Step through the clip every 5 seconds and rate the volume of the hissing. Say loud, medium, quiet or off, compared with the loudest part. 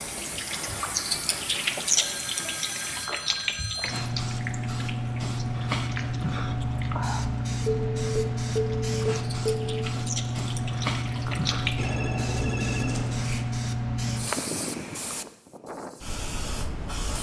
medium, loud, loud, medium.